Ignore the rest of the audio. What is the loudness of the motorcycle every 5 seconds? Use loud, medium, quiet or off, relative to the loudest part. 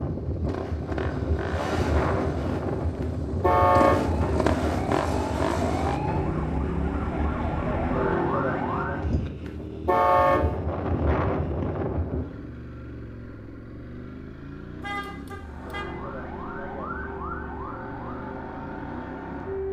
loud, loud, medium, medium.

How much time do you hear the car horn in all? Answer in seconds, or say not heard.
2 s.